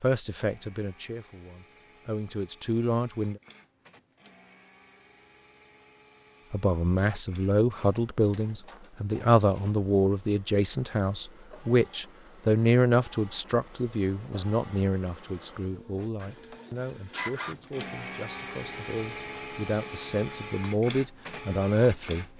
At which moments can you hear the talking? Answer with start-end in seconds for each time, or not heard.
0.0-3.4, 6.5-22.3.